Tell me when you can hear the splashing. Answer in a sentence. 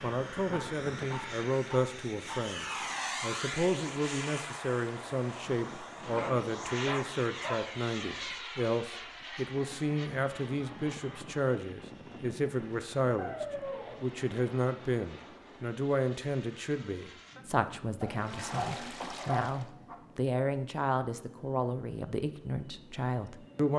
You can hear the splashing from 18.0 to 19.7 s.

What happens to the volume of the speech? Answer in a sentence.
The loudness of the speech stays about the same.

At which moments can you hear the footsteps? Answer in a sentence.
The footsteps can't be heard in this clip.